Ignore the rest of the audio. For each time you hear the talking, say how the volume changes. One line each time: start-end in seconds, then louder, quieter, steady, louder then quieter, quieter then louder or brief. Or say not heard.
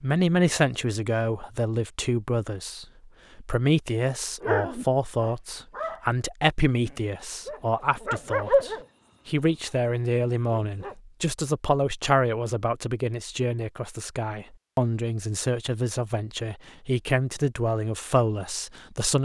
0.0-19.2 steady.